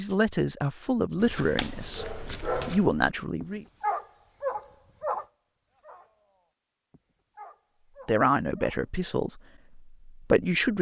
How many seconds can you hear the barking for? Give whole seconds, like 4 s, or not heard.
7 s.